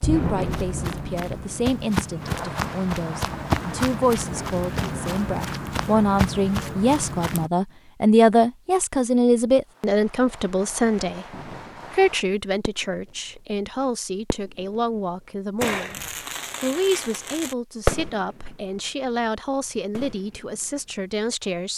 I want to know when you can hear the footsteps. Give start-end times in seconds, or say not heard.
0.1-7.5.